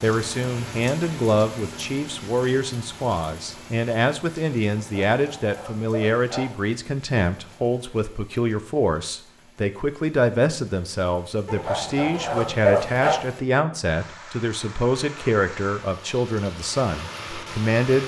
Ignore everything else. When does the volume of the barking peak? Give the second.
13 s.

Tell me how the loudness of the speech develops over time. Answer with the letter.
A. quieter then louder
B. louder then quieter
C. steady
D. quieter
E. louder
C.